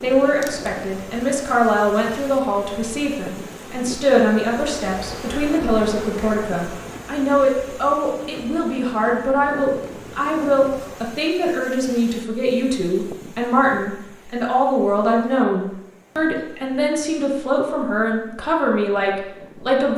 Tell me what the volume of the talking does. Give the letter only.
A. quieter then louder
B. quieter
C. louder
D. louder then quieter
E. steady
E.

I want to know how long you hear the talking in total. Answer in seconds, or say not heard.
20 s.